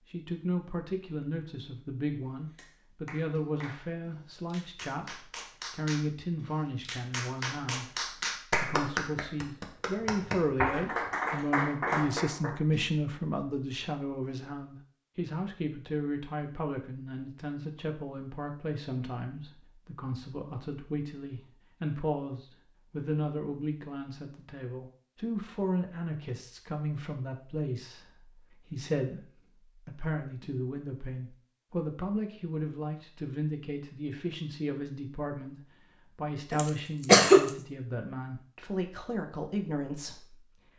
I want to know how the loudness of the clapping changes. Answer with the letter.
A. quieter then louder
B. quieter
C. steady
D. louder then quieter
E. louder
E.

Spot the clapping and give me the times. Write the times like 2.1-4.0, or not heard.
2.2-12.9.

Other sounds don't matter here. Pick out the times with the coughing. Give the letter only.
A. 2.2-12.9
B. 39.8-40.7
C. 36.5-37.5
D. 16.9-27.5
C.